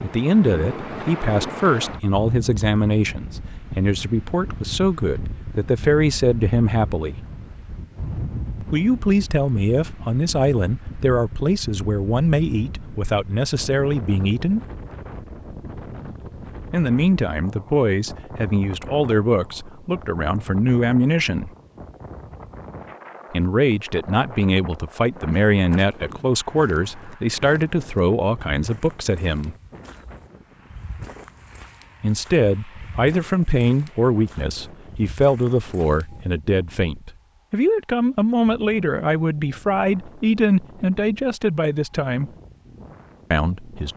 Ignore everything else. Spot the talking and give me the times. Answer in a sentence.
You can hear the talking from 0.0 to 7.2 s, from 8.7 to 14.6 s, from 16.7 to 21.5 s, from 23.3 to 29.6 s, from 32.0 to 42.3 s and from 43.3 to 43.9 s.